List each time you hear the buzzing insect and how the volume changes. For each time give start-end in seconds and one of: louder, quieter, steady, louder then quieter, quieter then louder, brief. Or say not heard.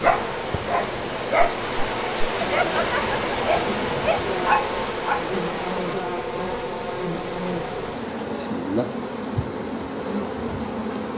0.0-11.1 steady.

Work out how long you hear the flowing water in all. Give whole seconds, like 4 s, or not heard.
6 s.